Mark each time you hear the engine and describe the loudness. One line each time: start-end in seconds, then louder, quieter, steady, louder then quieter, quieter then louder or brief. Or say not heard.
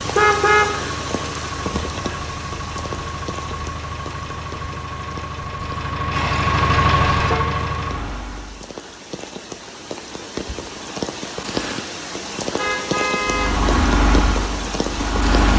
0.0-8.7 louder
13.2-15.5 brief.